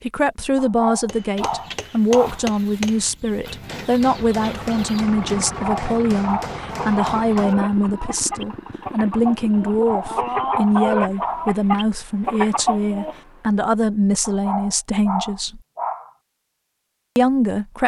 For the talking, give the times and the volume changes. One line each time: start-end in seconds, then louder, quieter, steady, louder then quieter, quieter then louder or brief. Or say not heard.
0.0-15.6 steady
17.1-17.8 brief.